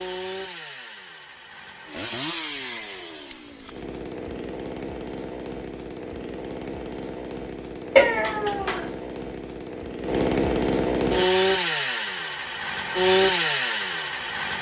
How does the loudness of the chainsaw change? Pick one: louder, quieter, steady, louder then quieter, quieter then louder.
louder.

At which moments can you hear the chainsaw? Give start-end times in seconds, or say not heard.
0.0-14.5.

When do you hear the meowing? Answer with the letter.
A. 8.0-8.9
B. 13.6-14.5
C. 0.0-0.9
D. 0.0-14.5
A.